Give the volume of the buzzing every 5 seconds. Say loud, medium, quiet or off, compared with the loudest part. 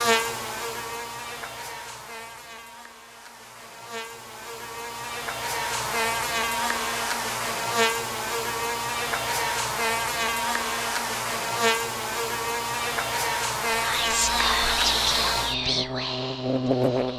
medium, loud, loud, loud.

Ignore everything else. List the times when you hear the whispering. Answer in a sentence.
You can hear the whispering from 13.7 to 17.1 s.